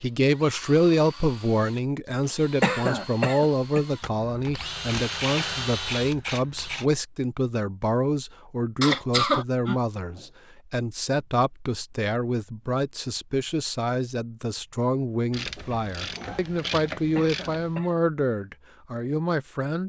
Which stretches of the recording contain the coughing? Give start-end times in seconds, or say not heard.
2.6-3.8, 8.8-10.2, 17.1-18.0.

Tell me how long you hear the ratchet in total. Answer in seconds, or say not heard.
5 s.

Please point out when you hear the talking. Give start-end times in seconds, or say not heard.
0.0-19.8.